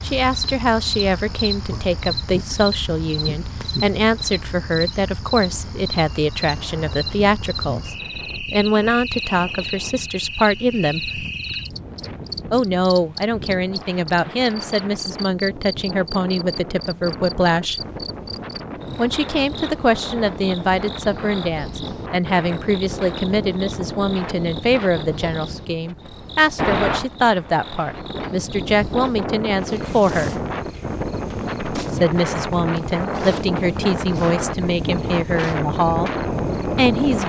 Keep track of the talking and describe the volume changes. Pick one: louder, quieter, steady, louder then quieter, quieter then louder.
steady.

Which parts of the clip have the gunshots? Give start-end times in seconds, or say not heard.
not heard.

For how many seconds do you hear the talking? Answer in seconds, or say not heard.
33 s.